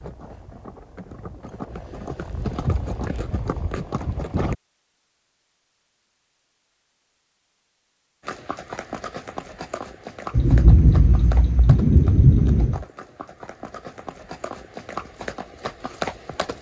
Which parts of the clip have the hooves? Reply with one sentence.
You can hear the hooves from 0.0 to 4.5 s and from 8.2 to 16.5 s.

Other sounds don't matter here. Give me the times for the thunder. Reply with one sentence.
The thunder can be heard from 10.3 to 12.8 s.